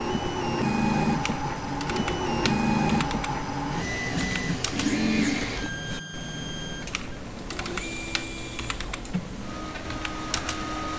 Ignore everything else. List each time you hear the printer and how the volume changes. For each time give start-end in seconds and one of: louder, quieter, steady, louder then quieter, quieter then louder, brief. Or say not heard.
0.0-10.9 quieter.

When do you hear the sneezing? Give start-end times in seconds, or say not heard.
not heard.